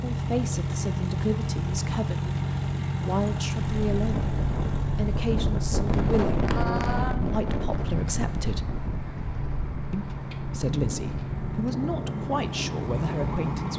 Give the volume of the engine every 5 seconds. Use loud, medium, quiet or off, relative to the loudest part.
loud, medium, loud.